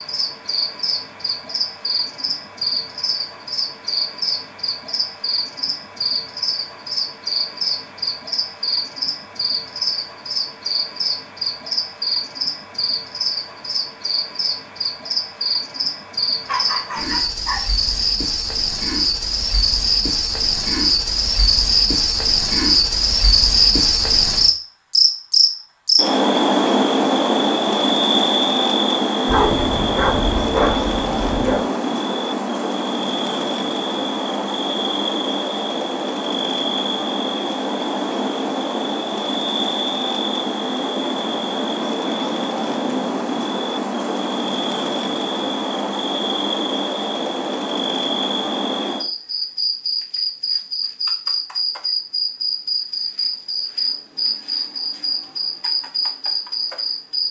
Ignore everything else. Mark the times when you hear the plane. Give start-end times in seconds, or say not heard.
not heard.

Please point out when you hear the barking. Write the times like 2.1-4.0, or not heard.
16.4-17.6, 29.2-31.6.